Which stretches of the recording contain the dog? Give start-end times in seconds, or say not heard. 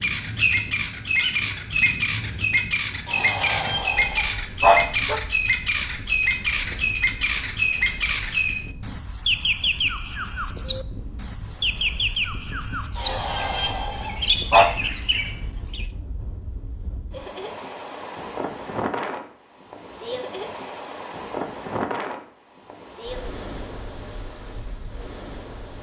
3.0-5.2, 12.9-14.7.